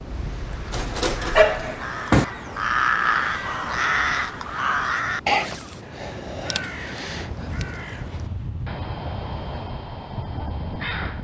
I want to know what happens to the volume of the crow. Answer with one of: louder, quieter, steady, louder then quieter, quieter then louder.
louder then quieter.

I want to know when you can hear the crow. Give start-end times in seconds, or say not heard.
0.0-11.1.